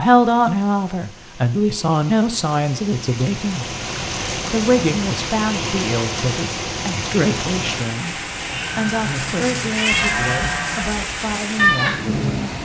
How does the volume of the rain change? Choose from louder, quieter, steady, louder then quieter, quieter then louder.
louder.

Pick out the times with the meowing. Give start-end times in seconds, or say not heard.
9.7-10.2.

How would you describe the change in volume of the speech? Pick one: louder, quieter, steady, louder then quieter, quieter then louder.
quieter.